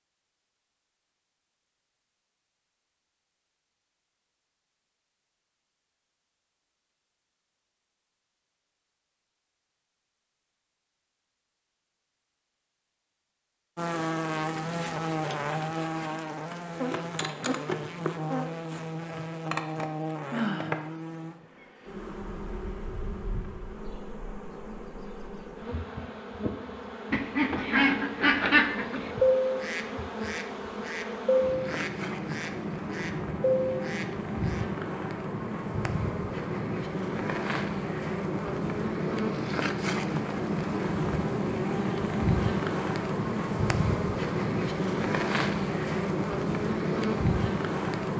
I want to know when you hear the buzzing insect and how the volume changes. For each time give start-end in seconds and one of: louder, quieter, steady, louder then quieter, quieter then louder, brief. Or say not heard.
13.8-48.1 quieter then louder.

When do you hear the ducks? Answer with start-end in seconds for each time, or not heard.
27.1-34.6.